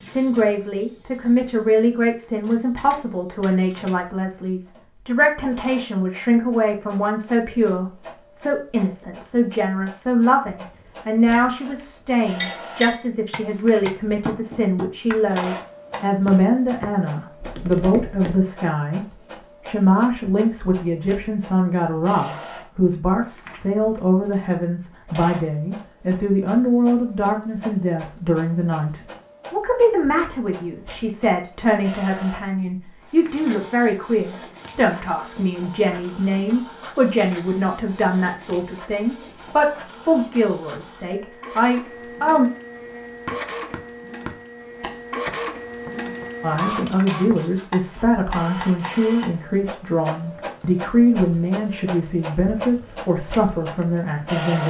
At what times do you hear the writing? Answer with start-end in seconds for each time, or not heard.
not heard.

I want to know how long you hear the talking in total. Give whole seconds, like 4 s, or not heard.
51 s.